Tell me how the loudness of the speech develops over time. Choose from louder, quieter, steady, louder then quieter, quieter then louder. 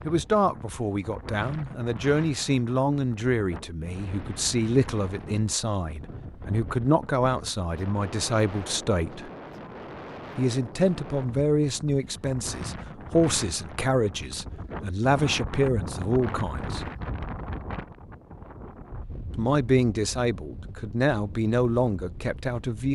steady.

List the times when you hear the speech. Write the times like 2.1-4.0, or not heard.
0.1-9.3, 10.3-16.9, 19.4-22.9.